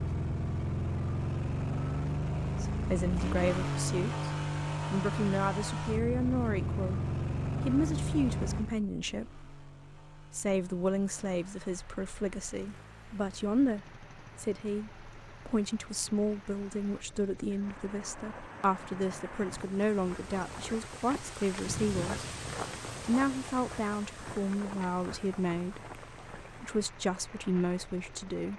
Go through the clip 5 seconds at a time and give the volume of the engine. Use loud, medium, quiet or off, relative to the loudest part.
loud, loud, quiet, quiet, quiet, quiet.